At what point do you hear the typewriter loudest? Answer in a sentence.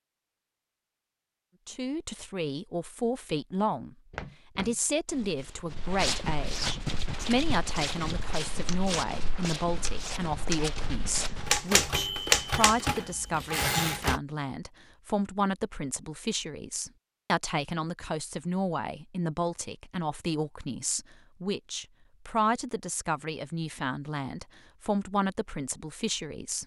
The volume of the typewriter peaks at 12 seconds.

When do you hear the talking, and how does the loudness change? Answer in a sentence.
The talking can be heard briefly from 1.6 to 4.0 s; and from 4.5 to 26.6 s, at a steady volume.